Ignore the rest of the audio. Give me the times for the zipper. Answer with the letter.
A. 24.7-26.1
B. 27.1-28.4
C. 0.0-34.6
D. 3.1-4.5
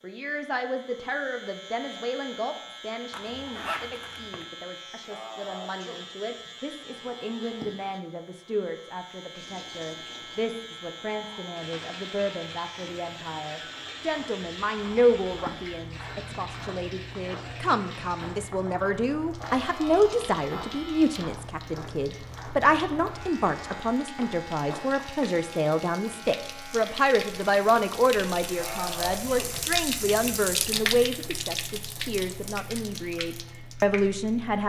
D.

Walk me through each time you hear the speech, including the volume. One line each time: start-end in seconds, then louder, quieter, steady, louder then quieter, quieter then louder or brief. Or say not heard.
0.0-34.6 louder.